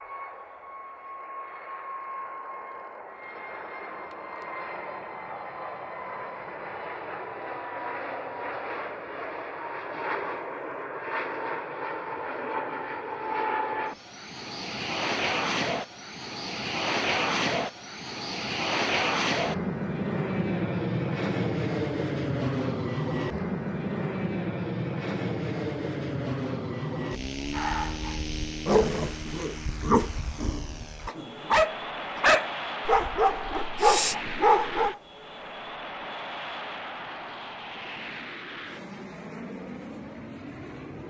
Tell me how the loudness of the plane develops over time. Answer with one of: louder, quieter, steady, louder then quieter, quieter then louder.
louder then quieter.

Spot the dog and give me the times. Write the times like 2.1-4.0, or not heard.
27.6-35.0.